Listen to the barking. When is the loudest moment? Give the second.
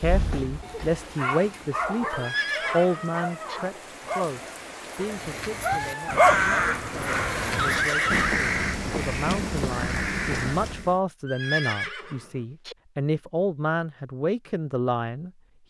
6 s.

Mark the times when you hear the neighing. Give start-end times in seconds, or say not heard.
2.1-3.6, 6.9-8.3, 11.2-12.8.